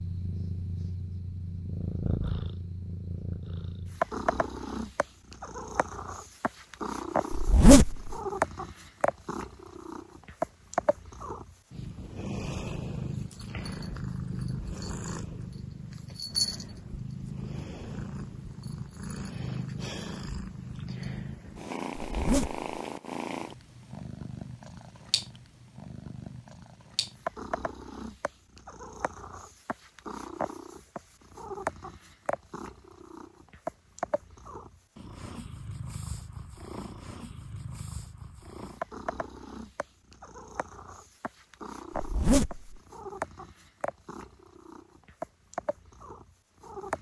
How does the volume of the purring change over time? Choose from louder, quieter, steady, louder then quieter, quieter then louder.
quieter.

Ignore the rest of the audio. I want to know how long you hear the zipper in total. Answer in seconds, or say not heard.
2 s.